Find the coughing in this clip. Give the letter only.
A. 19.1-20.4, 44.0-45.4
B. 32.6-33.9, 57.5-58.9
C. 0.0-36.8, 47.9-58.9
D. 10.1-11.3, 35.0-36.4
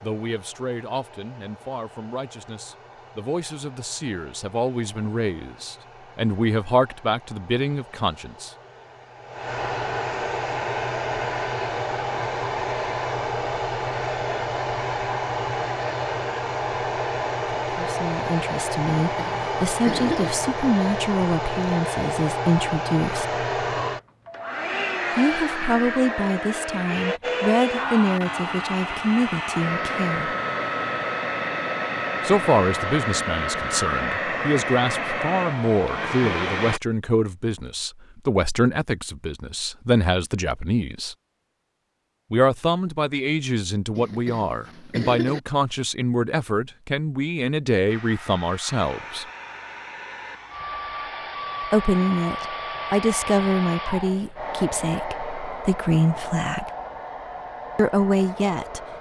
A.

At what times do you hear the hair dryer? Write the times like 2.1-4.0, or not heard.
0.0-36.8, 47.9-58.9.